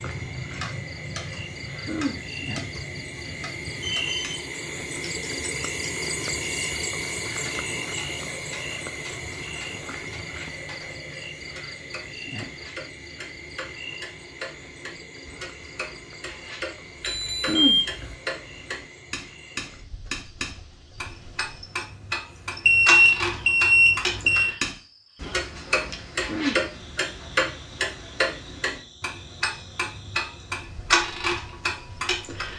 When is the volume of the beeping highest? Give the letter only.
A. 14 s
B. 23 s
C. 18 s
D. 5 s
B.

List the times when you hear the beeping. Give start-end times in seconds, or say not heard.
3.8-4.4, 17.0-18.1, 22.6-24.4.